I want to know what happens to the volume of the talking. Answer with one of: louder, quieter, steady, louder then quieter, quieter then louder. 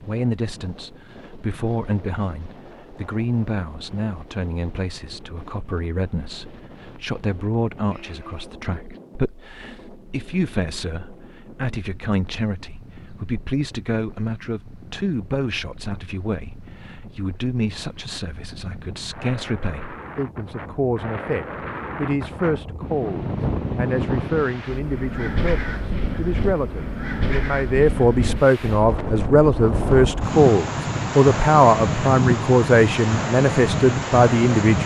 louder.